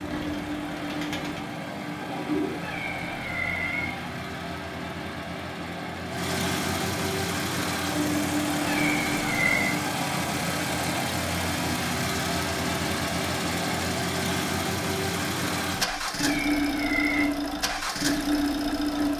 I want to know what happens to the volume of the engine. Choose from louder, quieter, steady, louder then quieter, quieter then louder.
louder.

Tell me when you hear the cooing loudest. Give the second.
2 s.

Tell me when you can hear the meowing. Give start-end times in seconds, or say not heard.
2.6-4.1, 8.7-9.6, 16.1-17.3.